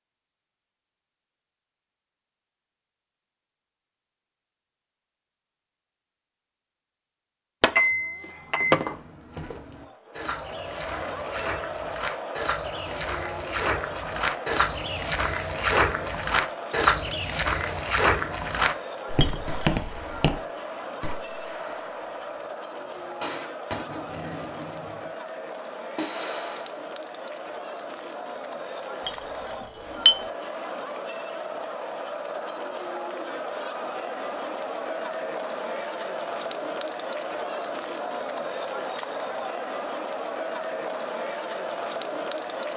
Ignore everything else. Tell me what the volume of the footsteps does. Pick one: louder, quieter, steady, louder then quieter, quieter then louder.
louder.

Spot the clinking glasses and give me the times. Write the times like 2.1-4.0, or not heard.
7.6-8.9, 19.1-20.0, 29.1-30.2.